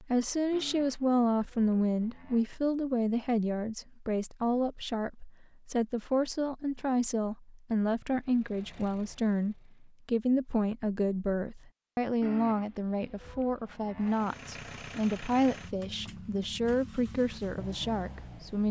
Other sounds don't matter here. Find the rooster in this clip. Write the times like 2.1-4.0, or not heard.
not heard.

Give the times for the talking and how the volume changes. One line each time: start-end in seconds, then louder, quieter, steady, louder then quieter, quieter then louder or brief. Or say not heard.
0.0-18.6 steady.